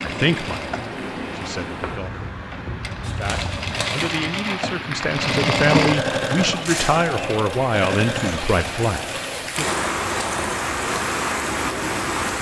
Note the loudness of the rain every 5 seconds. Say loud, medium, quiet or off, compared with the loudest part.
medium, medium, loud.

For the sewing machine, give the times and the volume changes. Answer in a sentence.
You can hear the sewing machine from 0.0 to 12.2 s, getting louder then quieter.